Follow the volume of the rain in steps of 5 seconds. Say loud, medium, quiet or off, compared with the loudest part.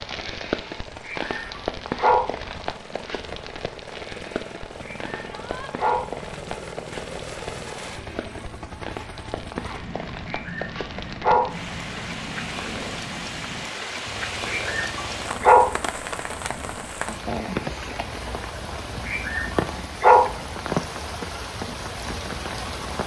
loud, medium, loud, loud, loud.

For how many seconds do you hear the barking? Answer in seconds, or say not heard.
6 s.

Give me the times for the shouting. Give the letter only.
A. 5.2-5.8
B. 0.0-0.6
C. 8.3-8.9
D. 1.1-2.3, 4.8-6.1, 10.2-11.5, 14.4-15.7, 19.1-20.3
A.